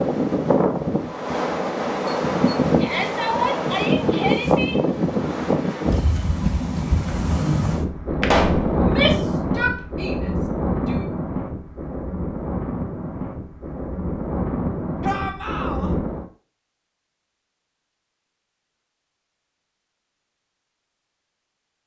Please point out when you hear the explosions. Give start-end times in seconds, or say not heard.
8.2-8.8.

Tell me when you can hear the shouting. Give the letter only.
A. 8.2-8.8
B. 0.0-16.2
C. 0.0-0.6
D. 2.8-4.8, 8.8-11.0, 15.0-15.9
D.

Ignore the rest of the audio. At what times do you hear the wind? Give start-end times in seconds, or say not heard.
0.0-16.2.